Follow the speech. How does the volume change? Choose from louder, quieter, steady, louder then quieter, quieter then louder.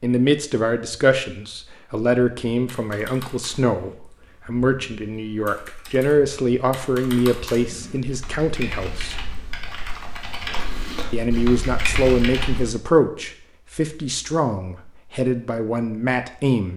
steady.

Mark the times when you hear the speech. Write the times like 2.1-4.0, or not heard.
0.0-9.2, 11.1-16.7.